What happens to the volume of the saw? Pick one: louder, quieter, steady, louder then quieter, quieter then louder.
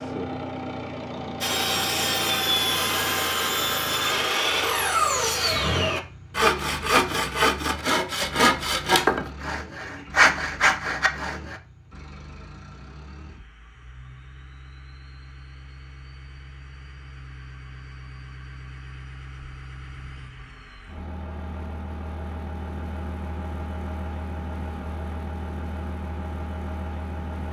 steady.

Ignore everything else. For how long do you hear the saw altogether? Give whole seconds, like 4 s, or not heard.
10 s.